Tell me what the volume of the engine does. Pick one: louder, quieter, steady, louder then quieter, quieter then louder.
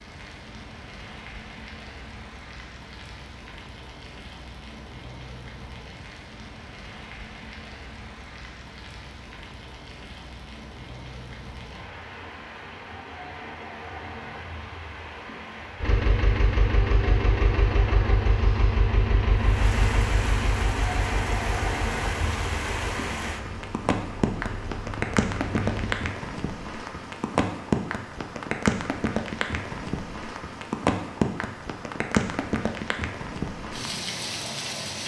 quieter.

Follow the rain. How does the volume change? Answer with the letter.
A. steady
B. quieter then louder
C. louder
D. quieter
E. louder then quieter
C.